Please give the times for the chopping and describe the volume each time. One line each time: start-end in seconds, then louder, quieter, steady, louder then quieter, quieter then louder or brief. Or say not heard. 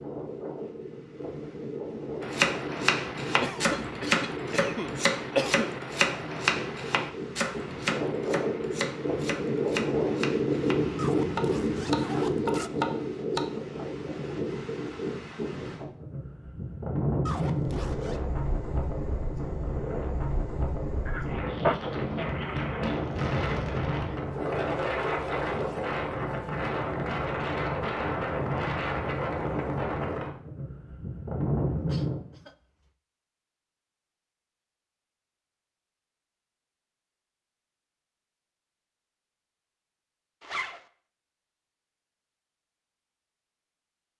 2.2-13.4 quieter then louder.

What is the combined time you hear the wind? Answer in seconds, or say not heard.
32 s.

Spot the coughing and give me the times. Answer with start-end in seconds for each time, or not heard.
3.4-5.7, 21.1-21.8, 31.7-32.9.